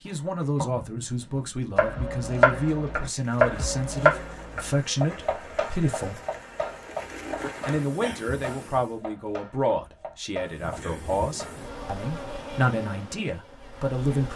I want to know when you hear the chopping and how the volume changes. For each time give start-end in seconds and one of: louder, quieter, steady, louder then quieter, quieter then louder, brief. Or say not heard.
0.1-11.7 quieter.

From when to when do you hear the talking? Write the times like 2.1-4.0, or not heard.
0.0-6.2, 7.7-14.3.